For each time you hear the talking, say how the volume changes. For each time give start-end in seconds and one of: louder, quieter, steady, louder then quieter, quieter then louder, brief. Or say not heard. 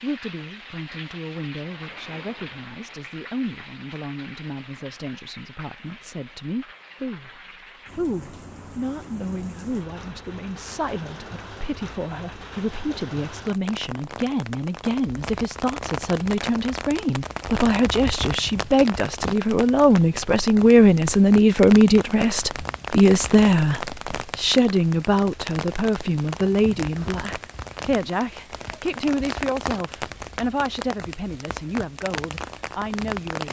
0.0-33.4 louder then quieter.